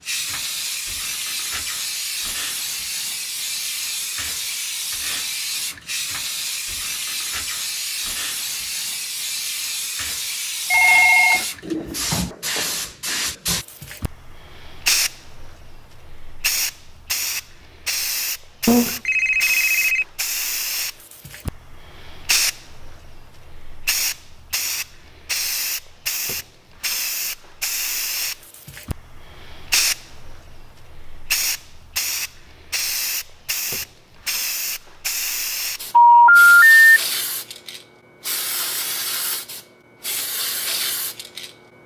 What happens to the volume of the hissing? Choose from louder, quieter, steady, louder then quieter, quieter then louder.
steady.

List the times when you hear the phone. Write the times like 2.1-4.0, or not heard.
10.7-11.4, 18.6-20.1, 35.9-37.0.